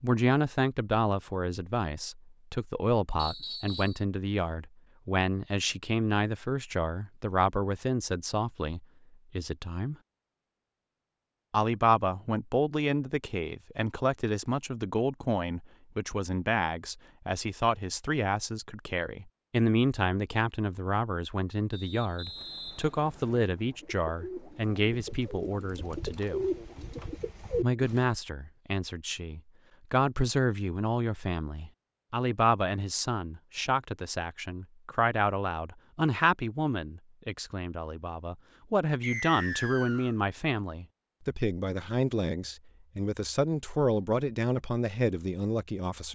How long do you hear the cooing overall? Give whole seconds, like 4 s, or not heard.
6 s.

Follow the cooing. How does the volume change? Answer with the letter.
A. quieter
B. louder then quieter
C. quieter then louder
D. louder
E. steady
D.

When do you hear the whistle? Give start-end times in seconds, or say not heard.
3.1-4.0, 21.7-23.4, 39.0-40.1.